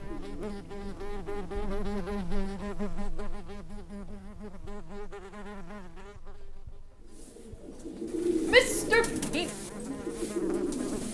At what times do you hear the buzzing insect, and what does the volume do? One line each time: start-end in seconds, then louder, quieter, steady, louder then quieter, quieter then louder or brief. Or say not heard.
0.0-11.0 quieter then louder.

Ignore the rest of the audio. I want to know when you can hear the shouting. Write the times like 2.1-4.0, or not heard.
8.4-9.5.